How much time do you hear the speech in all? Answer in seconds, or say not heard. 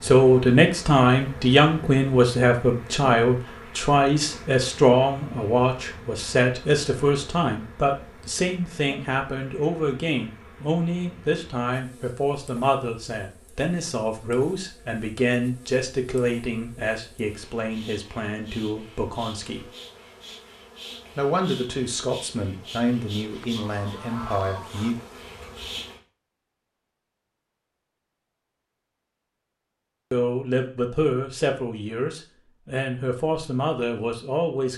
28 s.